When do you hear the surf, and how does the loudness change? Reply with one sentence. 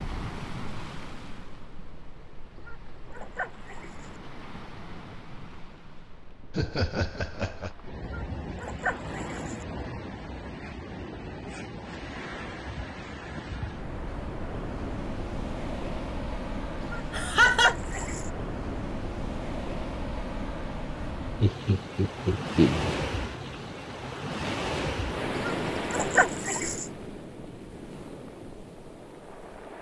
You can hear the surf from 0.0 to 29.7 s, getting louder.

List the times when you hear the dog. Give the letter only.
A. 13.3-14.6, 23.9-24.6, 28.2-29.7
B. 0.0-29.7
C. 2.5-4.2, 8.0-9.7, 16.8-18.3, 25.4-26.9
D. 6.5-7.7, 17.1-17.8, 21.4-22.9
C.